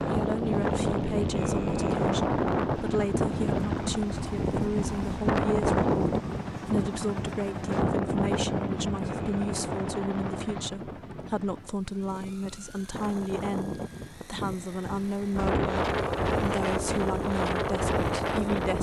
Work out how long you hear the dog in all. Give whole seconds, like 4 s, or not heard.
not heard.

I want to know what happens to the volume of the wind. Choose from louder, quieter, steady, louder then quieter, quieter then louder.
quieter then louder.